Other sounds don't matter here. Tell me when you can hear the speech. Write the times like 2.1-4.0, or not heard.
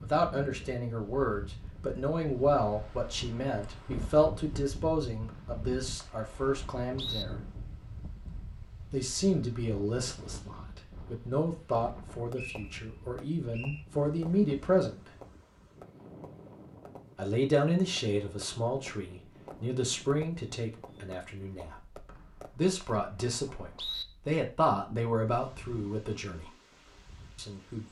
0.0-7.4, 8.9-15.1, 17.1-21.8, 22.6-26.5, 27.4-27.8.